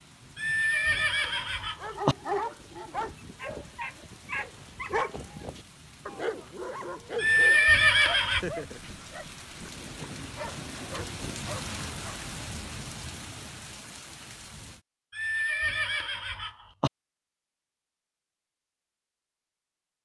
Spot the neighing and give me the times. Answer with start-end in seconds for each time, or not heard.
0.3-2.1, 7.2-8.4, 15.2-16.9.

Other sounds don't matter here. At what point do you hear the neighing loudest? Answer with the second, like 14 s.
8 s.